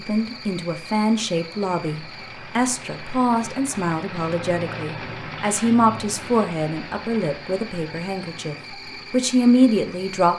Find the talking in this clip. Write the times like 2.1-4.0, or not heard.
0.0-10.3.